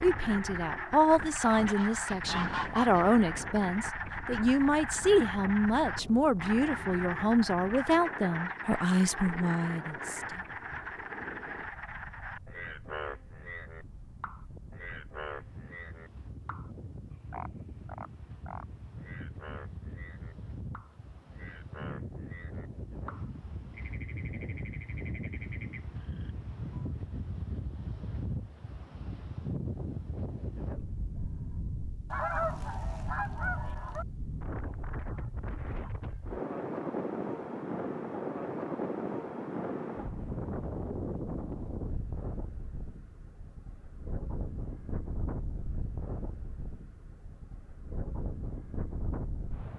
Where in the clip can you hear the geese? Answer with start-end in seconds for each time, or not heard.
1.4-3.1, 32.1-34.0.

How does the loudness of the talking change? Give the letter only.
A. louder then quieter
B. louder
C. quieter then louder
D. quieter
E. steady
E.